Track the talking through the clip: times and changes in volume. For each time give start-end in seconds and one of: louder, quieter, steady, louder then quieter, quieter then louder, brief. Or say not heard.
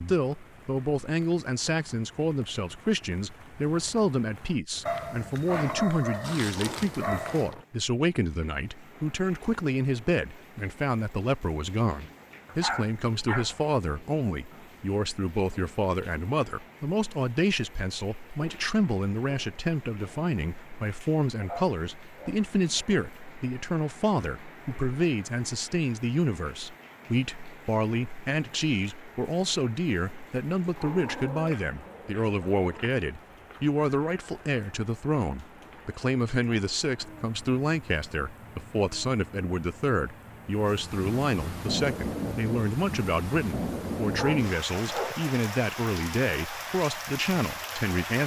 0.0-48.2 steady.